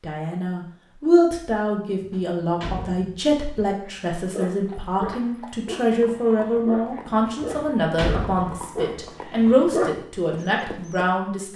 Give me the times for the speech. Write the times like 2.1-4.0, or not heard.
0.0-11.5.